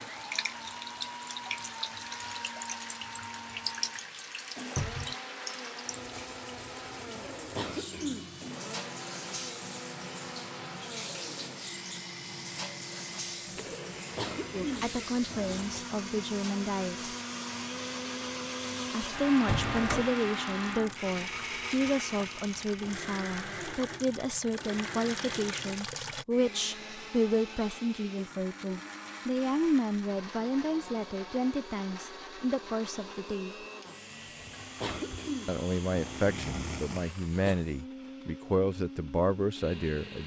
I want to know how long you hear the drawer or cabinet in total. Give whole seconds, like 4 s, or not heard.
2 s.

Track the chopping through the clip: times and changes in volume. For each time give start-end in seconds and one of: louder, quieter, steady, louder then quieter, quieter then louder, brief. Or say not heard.
not heard.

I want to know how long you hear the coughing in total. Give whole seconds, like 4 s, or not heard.
5 s.